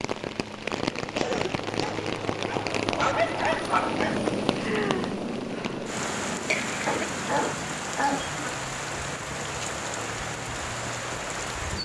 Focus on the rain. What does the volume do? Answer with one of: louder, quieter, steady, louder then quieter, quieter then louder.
steady.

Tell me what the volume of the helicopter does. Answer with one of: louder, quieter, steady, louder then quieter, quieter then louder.
louder then quieter.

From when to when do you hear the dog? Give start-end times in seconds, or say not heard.
2.5-4.2, 6.8-8.5.